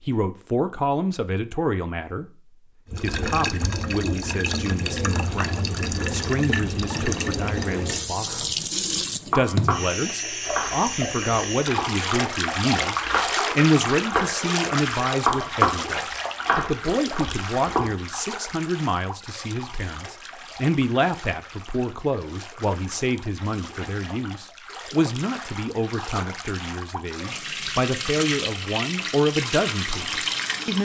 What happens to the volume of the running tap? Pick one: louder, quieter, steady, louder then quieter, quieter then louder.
quieter then louder.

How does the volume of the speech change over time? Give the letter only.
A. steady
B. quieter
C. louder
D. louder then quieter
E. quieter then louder
A.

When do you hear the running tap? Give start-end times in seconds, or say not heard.
2.9-30.8.